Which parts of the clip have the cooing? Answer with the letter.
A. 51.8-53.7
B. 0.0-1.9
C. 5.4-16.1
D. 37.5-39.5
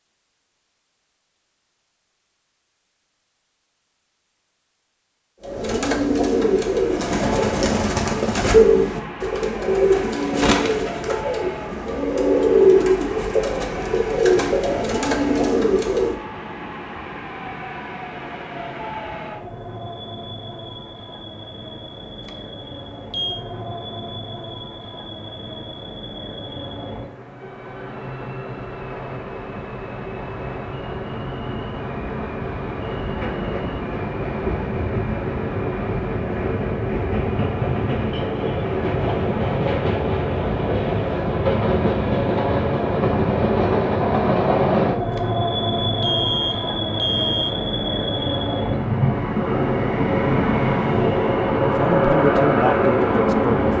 C.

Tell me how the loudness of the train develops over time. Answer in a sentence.
The volume of the train goes up.